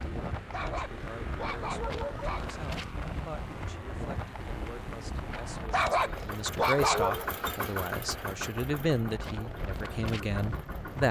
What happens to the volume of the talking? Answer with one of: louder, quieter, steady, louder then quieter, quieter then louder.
louder.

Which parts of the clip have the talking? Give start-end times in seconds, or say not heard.
0.1-11.0.